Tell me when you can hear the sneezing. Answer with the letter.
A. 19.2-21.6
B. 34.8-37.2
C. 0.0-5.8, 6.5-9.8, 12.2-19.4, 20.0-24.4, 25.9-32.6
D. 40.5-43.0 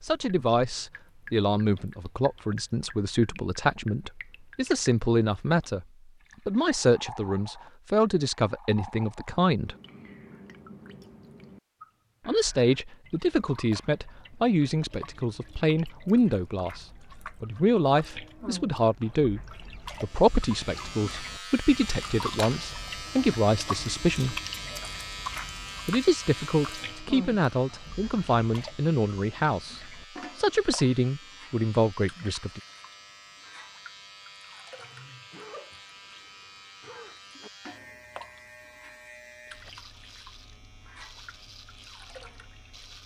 B.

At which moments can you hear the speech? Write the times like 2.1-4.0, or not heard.
0.0-5.8, 6.5-9.8, 12.2-19.4, 20.0-24.4, 25.9-32.6.